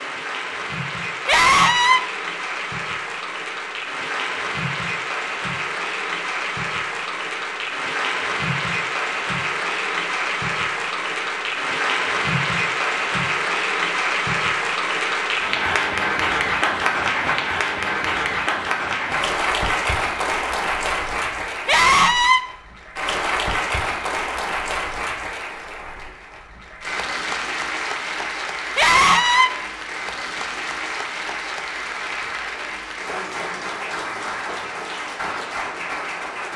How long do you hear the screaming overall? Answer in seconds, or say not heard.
2 s.